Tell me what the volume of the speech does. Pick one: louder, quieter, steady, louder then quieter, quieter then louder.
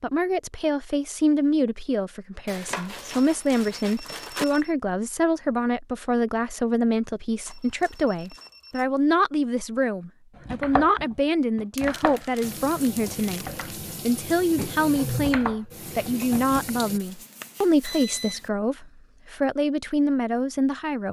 steady.